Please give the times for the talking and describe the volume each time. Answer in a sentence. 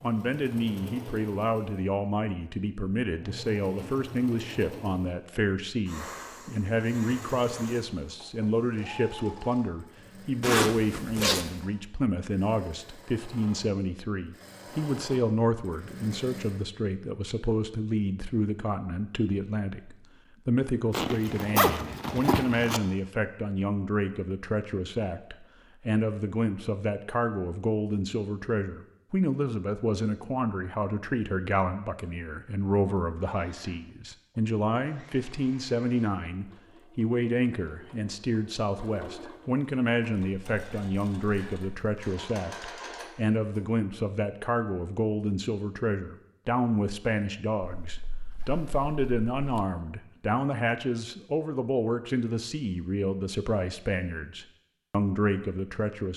You can hear the talking from 0.0 to 56.1 s, at a steady volume.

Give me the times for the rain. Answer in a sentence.
The rain can't be heard in this clip.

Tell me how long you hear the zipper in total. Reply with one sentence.
The zipper can be heard for 5 seconds in total.